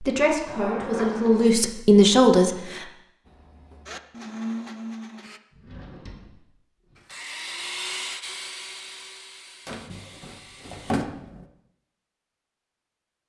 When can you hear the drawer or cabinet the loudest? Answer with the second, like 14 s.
11 s.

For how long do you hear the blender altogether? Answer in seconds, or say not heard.
6 s.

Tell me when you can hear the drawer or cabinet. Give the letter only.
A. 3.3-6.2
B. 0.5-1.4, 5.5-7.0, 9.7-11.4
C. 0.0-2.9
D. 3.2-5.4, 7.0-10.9
B.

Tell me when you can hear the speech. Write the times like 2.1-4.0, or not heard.
0.0-2.9.